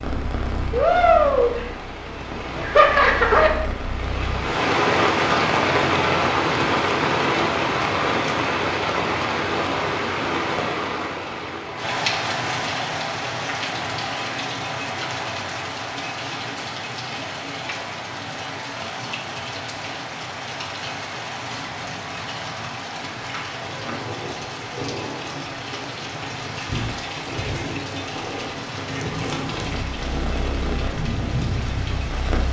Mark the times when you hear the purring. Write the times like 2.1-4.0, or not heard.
0.0-4.5, 26.1-32.4.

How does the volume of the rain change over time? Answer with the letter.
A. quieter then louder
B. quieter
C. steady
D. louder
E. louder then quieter
B.